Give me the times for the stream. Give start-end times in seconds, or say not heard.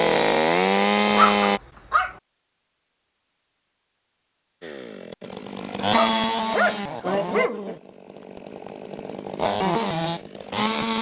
not heard.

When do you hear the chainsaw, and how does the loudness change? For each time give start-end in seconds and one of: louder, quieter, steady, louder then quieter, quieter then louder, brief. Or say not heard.
0.0-1.6 brief
4.6-10.9 quieter then louder.